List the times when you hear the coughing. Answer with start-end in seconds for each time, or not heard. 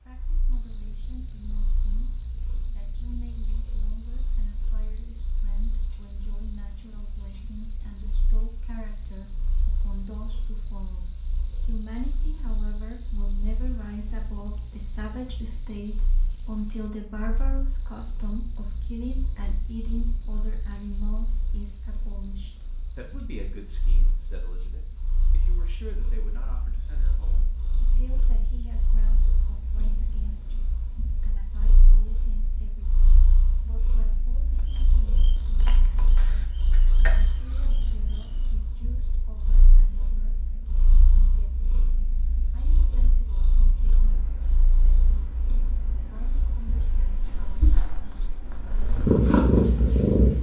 36.1-37.6.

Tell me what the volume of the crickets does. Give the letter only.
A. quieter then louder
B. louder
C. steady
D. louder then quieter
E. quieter
E.